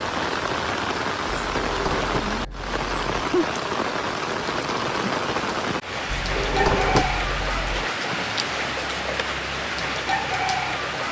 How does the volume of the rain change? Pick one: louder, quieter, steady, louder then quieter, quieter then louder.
steady.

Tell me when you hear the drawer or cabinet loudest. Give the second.
7 s.